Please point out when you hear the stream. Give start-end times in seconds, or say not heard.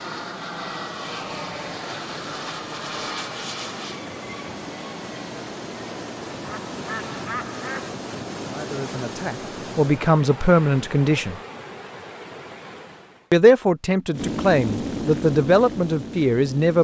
0.0-13.3.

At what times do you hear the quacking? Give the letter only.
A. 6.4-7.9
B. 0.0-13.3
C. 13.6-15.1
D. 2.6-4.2
A.